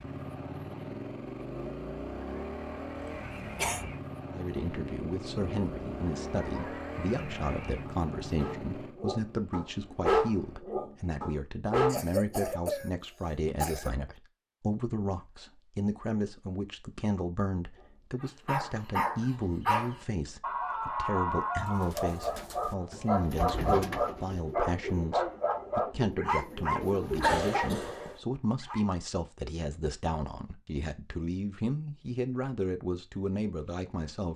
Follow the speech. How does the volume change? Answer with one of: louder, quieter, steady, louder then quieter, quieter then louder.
steady.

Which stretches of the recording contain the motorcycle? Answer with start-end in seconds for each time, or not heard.
0.0-10.7.